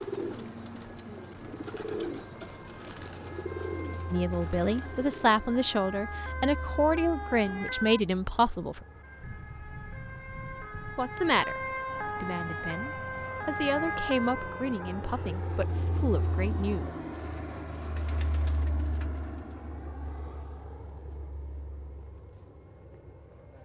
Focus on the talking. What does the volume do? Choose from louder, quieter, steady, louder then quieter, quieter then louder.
quieter.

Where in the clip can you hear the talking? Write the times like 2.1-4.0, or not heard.
4.1-8.8, 10.9-16.9.